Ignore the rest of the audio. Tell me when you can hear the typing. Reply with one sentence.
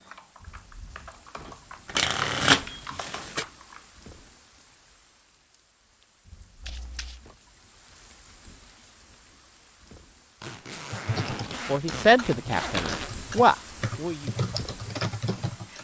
The typing can be heard from 0.0 to 4.3 s and from 10.9 to 15.7 s.